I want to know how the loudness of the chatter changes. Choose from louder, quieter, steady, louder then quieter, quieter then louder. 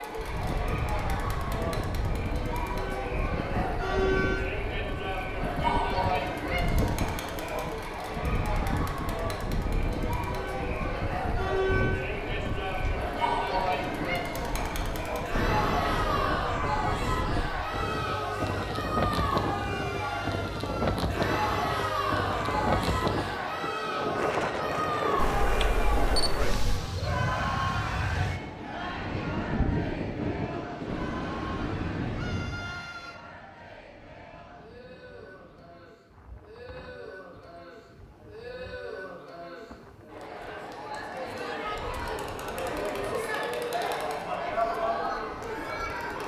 quieter then louder.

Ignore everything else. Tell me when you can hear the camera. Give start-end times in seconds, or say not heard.
25.1-26.8.